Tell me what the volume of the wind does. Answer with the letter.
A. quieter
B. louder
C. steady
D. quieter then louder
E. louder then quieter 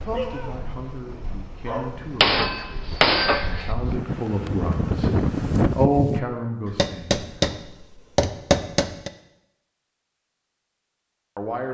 B.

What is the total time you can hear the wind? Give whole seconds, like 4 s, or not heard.
6 s.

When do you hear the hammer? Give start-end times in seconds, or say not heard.
2.2-3.7, 6.7-9.1.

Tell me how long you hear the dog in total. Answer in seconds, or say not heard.
2 s.